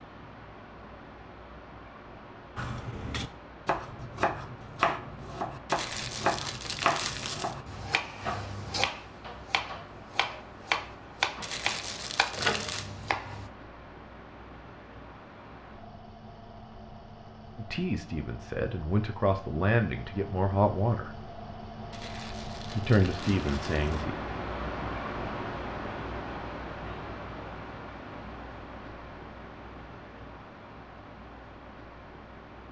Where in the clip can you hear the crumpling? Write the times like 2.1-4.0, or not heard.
5.7-7.5, 11.4-12.9, 21.9-24.1.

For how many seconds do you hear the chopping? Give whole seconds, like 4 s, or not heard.
11 s.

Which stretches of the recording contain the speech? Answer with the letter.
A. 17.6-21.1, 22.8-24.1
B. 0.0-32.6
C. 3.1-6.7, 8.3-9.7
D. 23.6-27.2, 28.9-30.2
A.